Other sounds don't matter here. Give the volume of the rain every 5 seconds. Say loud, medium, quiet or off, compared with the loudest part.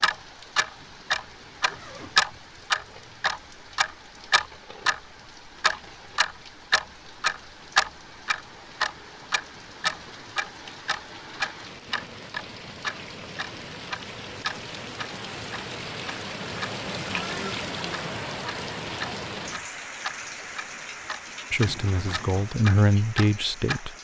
quiet, quiet, medium, loud, medium.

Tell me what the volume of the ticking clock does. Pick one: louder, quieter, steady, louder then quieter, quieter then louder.
quieter.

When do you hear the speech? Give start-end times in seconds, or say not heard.
21.5-23.9.